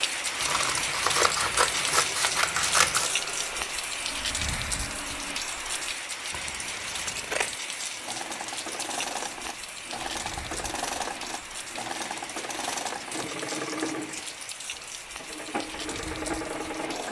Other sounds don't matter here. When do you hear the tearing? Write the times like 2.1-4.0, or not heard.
not heard.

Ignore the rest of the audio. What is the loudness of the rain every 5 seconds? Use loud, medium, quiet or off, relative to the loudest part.
loud, medium, medium, medium.